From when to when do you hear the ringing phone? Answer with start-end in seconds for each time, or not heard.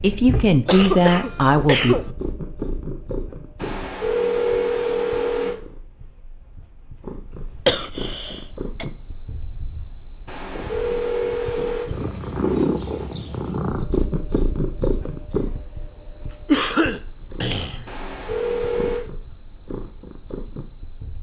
3.5-5.5, 10.2-11.9, 17.9-19.0.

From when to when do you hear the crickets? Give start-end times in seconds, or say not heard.
8.2-21.1.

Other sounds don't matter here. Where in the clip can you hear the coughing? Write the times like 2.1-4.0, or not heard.
0.7-2.0, 7.7-8.8, 16.4-17.9.